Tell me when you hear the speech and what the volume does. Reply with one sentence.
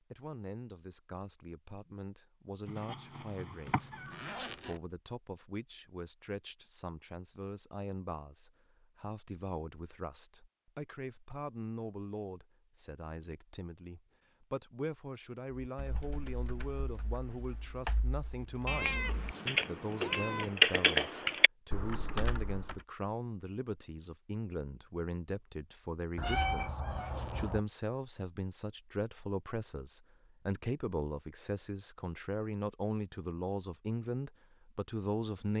You can hear the speech from 0.1 to 35.5 s, getting louder.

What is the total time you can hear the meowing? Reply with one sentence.
You can hear the meowing for 5 seconds altogether.